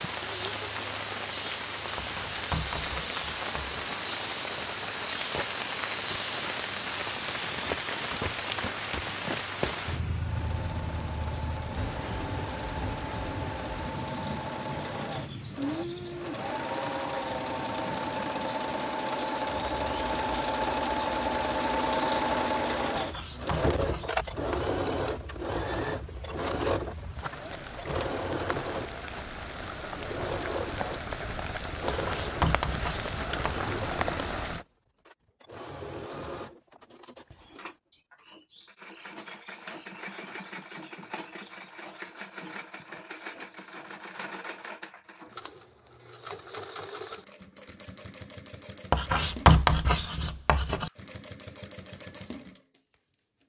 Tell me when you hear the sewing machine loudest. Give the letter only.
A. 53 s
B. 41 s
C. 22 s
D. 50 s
C.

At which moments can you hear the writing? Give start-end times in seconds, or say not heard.
1.9-3.8, 22.9-24.8, 31.9-33.7, 48.9-50.9.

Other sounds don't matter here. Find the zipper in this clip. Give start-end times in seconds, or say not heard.
not heard.